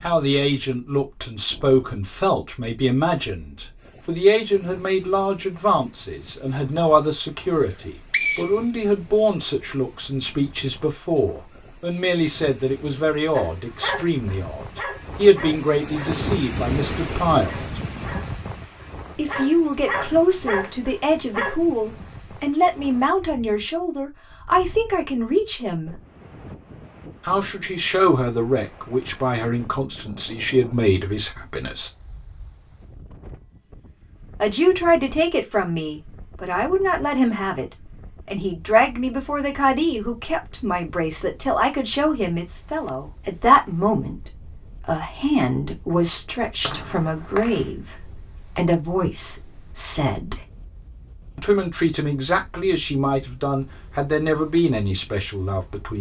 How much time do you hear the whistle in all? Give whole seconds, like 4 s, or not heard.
3 s.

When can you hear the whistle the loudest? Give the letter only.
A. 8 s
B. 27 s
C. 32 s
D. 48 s
A.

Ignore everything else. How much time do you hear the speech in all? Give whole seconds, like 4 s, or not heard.
49 s.